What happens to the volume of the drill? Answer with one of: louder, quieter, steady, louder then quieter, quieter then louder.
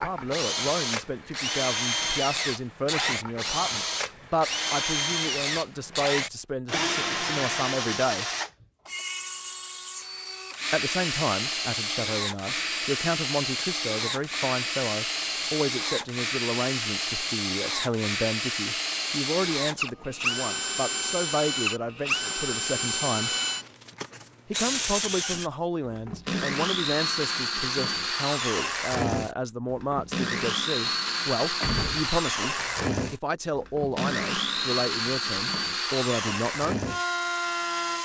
steady.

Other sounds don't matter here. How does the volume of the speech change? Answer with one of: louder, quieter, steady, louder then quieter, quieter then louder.
steady.